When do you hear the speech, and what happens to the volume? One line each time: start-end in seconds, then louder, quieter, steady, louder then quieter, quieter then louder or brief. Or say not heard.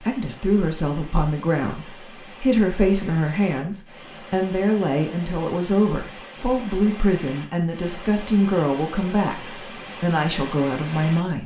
0.0-11.4 steady.